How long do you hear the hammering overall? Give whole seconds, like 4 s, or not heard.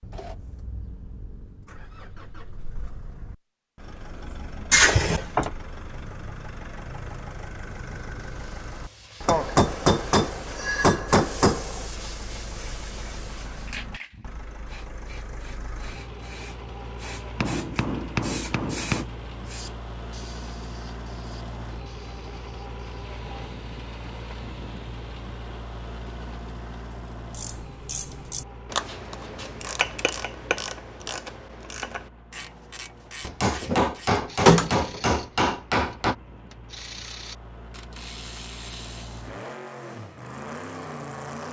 7 s.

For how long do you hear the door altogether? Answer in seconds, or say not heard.
2 s.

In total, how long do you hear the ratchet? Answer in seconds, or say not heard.
12 s.